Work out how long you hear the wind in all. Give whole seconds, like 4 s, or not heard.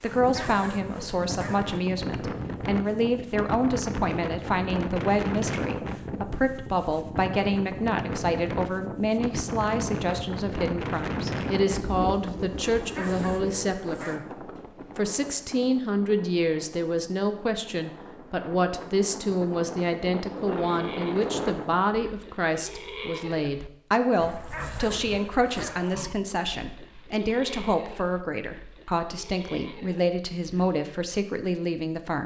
22 s.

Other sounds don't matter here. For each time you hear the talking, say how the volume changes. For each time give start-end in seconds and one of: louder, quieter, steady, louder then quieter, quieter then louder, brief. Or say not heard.
0.0-14.2 steady
14.9-32.2 steady.